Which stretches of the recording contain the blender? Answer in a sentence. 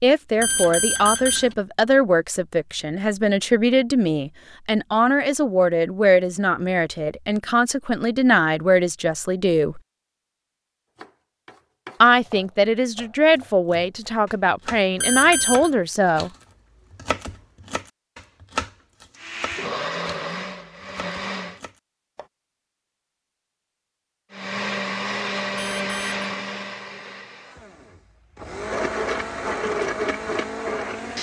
You can hear the blender from 19.1 to 21.6 s and from 24.3 to 31.1 s.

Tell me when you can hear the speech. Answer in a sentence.
The speech can be heard from 0.0 to 9.8 s and from 12.0 to 16.3 s.